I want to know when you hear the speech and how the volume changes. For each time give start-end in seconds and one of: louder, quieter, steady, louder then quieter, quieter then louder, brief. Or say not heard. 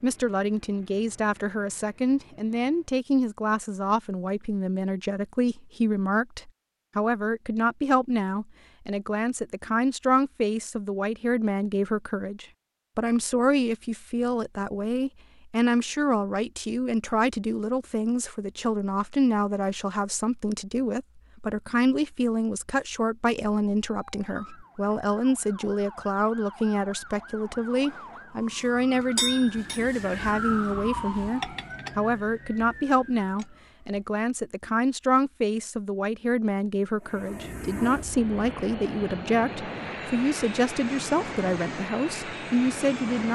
0.0-43.2 steady.